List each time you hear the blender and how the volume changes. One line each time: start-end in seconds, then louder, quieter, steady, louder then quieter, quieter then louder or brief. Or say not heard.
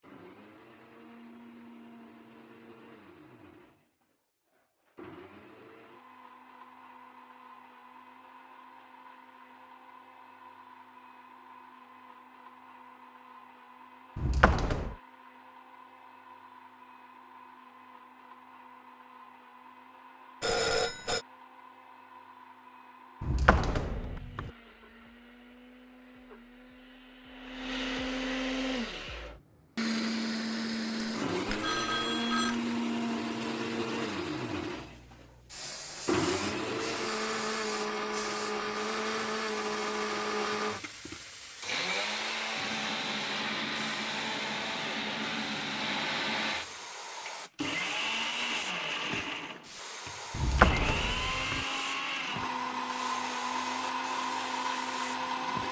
0.0-55.6 louder.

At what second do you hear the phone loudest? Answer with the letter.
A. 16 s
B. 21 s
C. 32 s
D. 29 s
B.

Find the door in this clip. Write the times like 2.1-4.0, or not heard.
14.2-14.9, 23.2-24.5, 50.3-51.6.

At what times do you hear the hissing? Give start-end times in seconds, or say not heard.
34.8-55.6.